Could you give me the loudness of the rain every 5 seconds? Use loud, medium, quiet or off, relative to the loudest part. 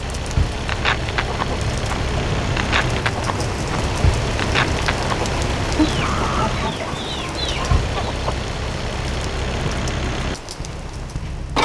loud, loud, medium.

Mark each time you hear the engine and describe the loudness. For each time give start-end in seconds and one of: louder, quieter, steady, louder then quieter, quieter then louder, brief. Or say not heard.
0.0-11.6 steady.